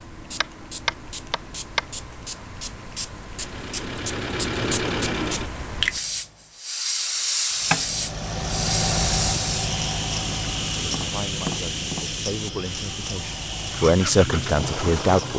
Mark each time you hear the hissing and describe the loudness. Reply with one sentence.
You can hear the hissing from 0.0 to 15.3 s, getting louder then quieter.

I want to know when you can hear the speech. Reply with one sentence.
The speech can be heard from 10.9 to 15.3 s.